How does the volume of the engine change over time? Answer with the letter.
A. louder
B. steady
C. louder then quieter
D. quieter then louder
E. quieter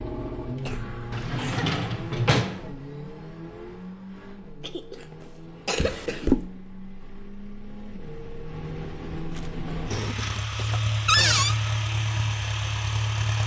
D.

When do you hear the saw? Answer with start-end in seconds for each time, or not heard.
not heard.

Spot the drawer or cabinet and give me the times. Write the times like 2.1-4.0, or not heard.
1.1-2.6, 5.8-6.5, 11.1-11.6.